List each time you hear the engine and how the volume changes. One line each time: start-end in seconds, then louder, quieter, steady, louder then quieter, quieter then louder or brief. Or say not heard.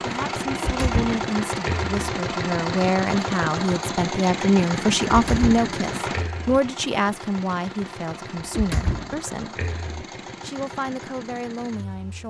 0.0-12.2 quieter.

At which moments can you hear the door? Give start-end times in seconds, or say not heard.
0.6-1.9, 5.1-6.6, 8.6-10.1.